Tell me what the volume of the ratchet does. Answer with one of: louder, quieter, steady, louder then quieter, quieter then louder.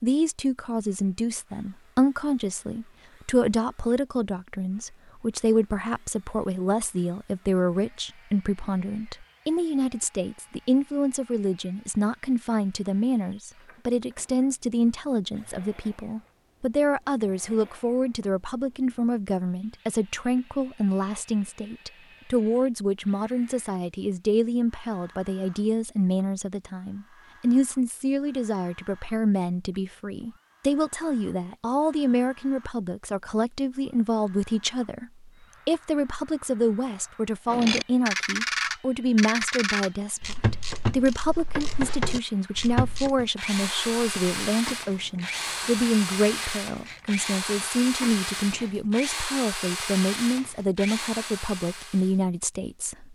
quieter.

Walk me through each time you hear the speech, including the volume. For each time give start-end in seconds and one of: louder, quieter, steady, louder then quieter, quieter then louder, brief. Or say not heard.
0.0-53.0 steady.